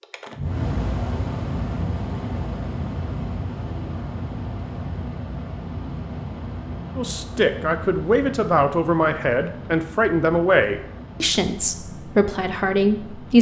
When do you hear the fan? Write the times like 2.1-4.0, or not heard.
0.0-13.3.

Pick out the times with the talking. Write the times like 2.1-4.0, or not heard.
7.0-13.3.